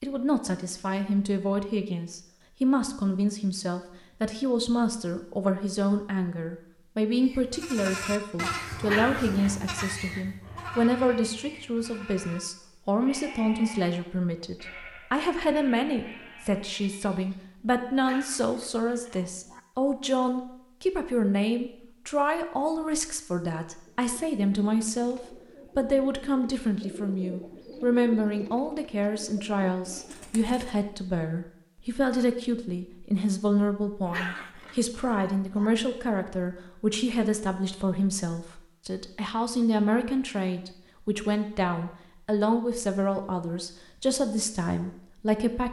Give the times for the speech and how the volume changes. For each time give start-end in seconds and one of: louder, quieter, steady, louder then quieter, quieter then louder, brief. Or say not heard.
0.0-45.6 steady.